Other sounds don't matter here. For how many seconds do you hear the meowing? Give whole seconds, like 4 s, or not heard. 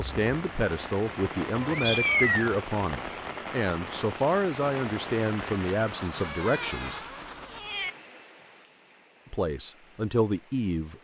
3 s.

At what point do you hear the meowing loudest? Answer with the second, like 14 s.
2 s.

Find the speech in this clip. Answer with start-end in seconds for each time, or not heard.
0.0-7.0, 9.3-10.9.